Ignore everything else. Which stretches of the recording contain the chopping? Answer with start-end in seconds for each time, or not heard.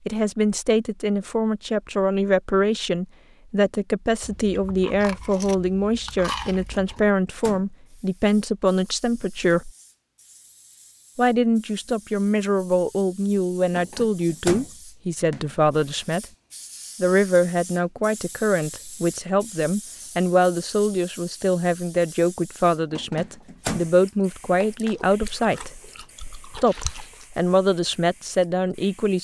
not heard.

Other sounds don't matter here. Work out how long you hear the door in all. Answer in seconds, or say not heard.
3 s.